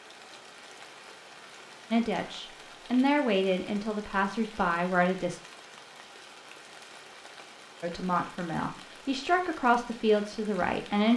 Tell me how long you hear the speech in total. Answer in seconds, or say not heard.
7 s.